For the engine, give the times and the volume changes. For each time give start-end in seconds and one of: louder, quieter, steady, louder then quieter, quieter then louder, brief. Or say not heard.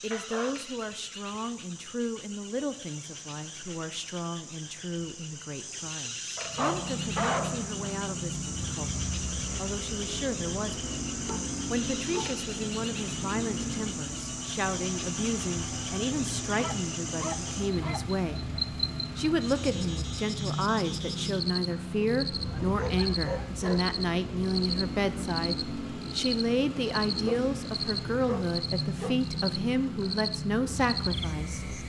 6.3-31.8 steady.